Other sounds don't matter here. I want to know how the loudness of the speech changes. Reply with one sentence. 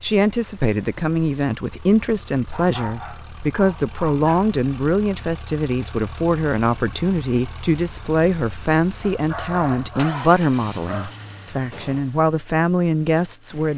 The volume of the speech stays about the same.